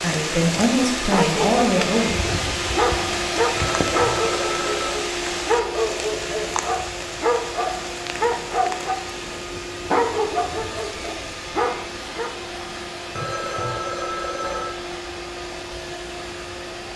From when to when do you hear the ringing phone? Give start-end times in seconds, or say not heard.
3.5-5.0, 13.2-14.8.